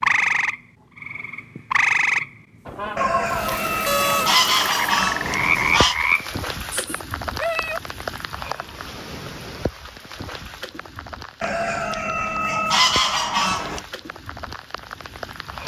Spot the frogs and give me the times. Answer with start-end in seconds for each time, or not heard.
0.0-7.8.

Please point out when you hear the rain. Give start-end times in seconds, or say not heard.
3.2-15.6.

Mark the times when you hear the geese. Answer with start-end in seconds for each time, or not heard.
3.0-6.0, 11.4-13.8.